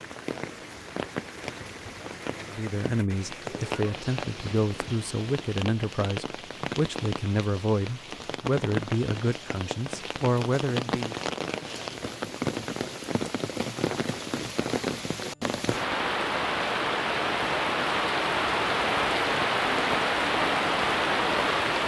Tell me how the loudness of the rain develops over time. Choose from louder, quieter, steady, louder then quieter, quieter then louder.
louder.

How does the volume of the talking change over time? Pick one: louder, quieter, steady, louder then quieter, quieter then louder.
steady.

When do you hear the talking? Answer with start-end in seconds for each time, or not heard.
2.4-11.2.